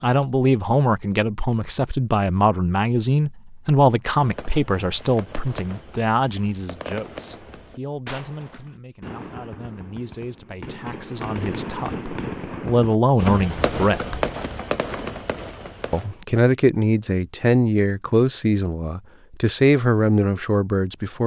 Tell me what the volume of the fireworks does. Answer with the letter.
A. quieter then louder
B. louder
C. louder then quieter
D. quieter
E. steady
B.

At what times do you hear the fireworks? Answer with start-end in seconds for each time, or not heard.
4.0-16.2.